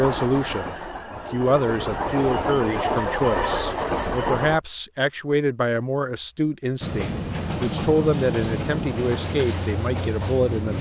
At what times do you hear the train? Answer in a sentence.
You can hear the train from 0.0 to 4.6 s and from 6.8 to 10.7 s.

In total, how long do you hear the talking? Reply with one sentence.
The talking can be heard for 11 seconds in total.